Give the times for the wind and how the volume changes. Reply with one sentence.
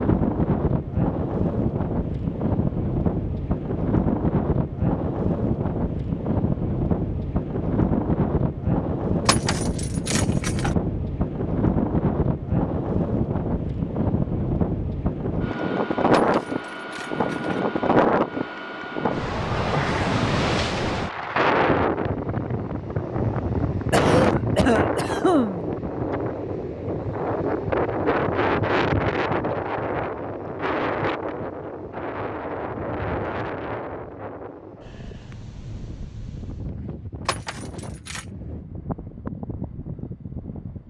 You can hear the wind from 0.0 to 40.8 s, getting quieter.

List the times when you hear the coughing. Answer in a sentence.
The coughing can be heard from 23.9 to 25.6 s.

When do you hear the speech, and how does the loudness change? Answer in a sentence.
You can't hear the speech here.